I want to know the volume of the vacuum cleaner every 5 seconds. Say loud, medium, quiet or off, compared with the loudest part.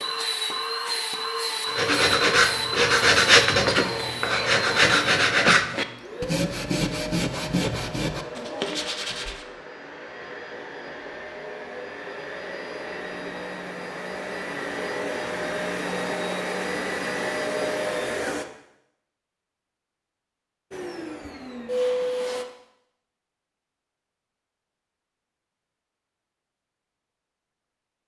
loud, medium, medium, loud, loud, off.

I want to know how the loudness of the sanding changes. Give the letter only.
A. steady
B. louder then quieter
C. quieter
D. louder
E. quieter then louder
C.